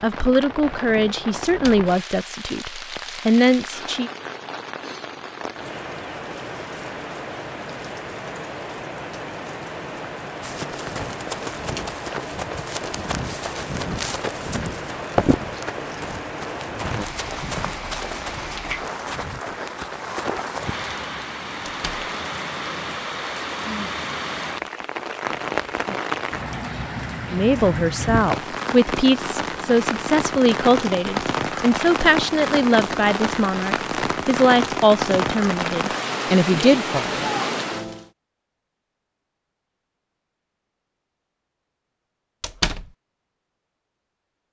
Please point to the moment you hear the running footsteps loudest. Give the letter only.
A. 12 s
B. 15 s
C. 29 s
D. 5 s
B.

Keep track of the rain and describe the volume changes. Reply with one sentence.
The volume of the rain goes up.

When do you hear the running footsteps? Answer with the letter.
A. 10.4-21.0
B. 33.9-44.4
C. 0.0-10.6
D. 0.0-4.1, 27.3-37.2
A.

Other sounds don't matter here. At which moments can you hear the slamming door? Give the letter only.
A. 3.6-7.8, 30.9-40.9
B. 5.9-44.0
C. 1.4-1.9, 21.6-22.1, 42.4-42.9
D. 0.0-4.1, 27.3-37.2
C.